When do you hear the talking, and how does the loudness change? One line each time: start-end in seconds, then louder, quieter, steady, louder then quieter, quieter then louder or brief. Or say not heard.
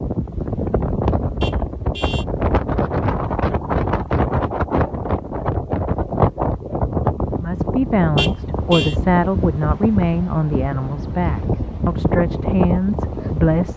7.3-13.7 steady.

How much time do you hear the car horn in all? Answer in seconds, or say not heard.
2 s.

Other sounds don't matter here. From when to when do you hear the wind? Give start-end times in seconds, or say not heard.
0.0-13.7.